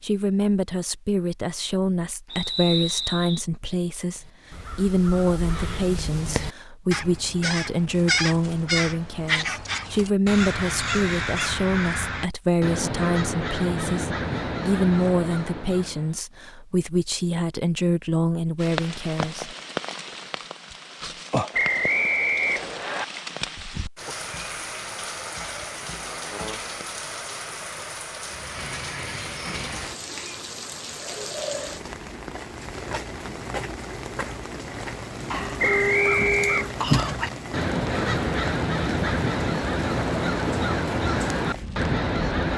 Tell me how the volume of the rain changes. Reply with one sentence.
The volume of the rain stays about the same.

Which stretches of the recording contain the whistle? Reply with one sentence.
You can hear the whistle from 2.3 to 3.5 s, from 21.5 to 23.1 s and from 35.5 to 36.6 s.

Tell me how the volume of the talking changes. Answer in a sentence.
The volume of the talking stays about the same.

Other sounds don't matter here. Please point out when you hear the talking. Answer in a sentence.
The talking can be heard from 0.0 to 19.6 s.